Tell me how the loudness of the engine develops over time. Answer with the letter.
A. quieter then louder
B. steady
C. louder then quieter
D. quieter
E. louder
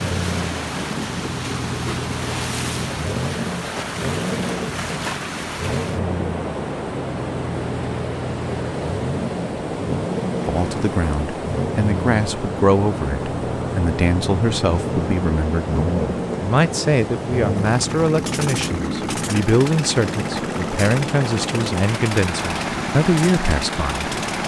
B.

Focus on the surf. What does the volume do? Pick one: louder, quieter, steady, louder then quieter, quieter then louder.
steady.